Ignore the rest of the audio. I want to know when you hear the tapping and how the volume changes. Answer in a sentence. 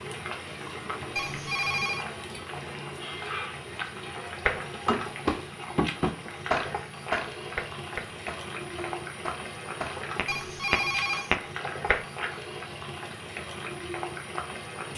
You can hear the tapping from 4.5 to 12.1 s, getting quieter then louder.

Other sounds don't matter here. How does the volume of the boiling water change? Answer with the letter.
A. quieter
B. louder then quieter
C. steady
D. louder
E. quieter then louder
C.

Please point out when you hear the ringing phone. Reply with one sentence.
You can hear the ringing phone from 1.1 to 2.0 s and from 10.2 to 11.3 s.